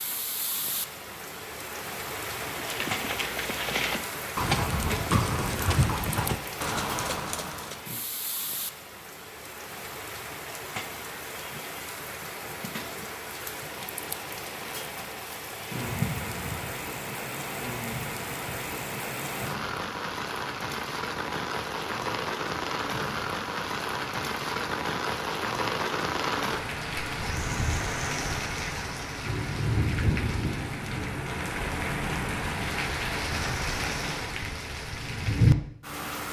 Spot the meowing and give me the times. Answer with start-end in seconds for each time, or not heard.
15.8-16.6.